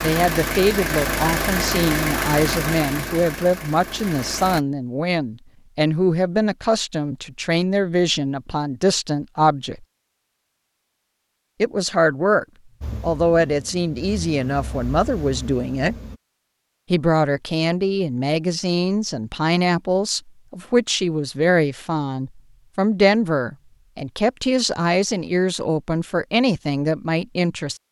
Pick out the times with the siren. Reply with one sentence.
You can't hear the siren here.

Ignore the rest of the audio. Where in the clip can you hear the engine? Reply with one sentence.
The engine can be heard from 0.0 to 4.6 s and from 12.8 to 16.1 s.